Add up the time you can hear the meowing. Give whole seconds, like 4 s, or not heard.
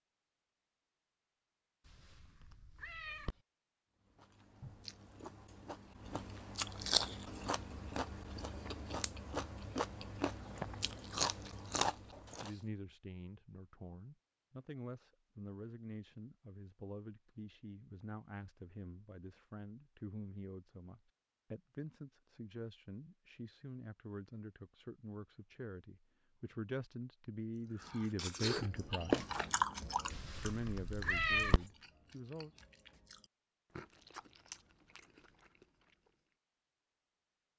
3 s.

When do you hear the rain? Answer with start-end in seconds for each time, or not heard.
not heard.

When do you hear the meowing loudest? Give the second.
31 s.